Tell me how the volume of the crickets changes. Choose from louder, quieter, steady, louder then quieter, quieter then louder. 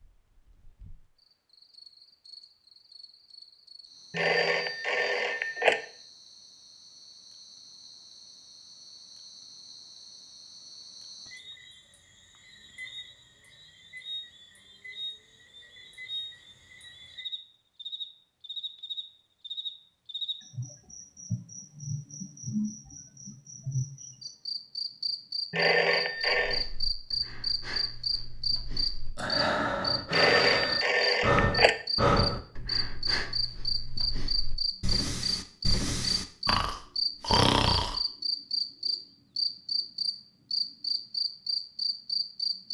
louder.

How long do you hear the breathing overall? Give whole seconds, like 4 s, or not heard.
12 s.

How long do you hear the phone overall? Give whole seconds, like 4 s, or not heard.
5 s.